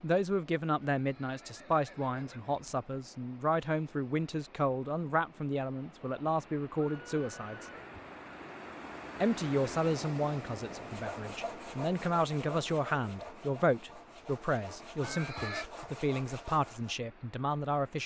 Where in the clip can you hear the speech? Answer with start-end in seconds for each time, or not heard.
0.0-7.7, 9.2-18.0.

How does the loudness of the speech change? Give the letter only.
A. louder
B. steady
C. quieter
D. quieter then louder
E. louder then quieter
B.